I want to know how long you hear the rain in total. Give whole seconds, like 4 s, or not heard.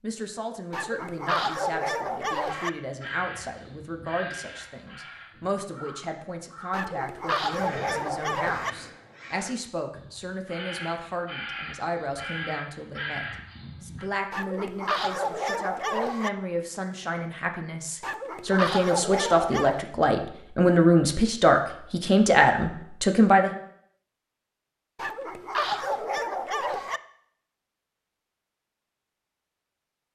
not heard.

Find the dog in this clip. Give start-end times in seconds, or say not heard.
0.7-2.7, 6.7-8.7, 14.3-16.3, 18.0-19.9, 24.9-27.0.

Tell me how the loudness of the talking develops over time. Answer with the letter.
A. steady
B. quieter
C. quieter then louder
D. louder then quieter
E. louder
E.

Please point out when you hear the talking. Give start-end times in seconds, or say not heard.
0.0-23.5.